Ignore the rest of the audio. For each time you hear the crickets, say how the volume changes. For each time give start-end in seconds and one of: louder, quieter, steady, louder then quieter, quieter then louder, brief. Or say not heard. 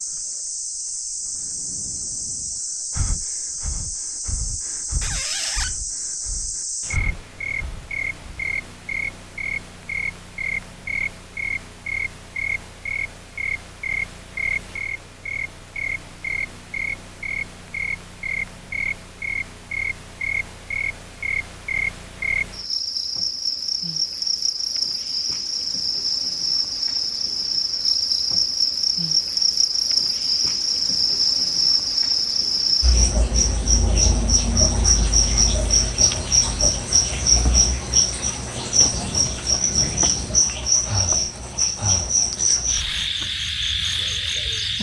0.0-44.7 louder.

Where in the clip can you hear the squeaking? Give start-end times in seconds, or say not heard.
5.0-5.8.